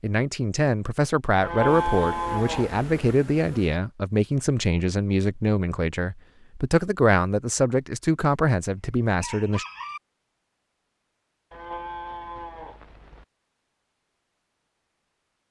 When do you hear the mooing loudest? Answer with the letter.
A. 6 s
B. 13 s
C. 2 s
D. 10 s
C.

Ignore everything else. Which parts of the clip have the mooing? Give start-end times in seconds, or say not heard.
1.4-3.1, 11.5-13.2.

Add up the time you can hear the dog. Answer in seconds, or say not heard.
not heard.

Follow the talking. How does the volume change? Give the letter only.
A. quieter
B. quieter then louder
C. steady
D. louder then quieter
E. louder
C.